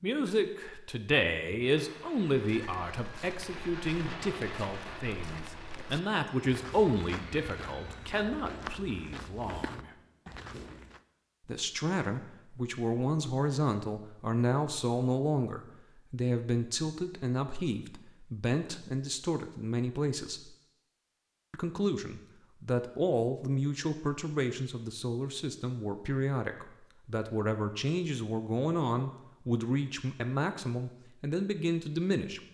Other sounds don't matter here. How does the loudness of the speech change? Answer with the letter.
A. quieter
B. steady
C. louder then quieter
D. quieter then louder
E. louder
B.